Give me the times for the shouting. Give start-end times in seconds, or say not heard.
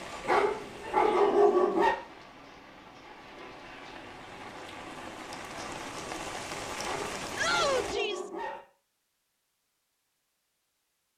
7.3-8.3.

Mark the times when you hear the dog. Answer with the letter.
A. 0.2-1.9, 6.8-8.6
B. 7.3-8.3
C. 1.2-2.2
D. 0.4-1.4
A.